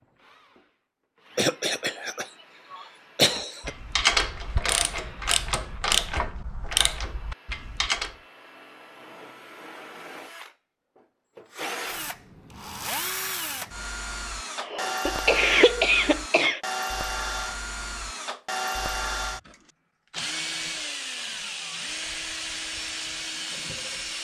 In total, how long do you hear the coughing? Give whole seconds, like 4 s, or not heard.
4 s.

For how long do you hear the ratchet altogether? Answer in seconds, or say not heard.
5 s.